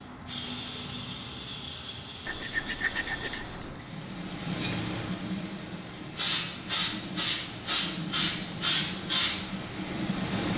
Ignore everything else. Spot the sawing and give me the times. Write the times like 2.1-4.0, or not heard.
2.2-3.8.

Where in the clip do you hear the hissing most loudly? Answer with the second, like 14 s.
9 s.